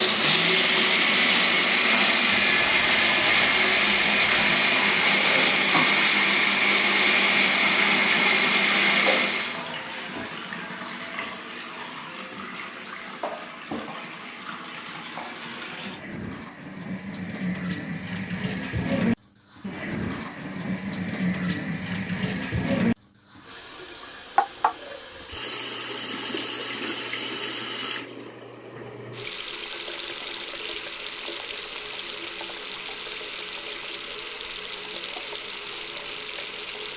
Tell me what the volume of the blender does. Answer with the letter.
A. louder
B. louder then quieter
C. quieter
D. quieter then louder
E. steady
E.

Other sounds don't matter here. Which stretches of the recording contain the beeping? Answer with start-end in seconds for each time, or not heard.
2.3-4.9.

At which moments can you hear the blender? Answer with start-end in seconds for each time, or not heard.
0.0-9.7.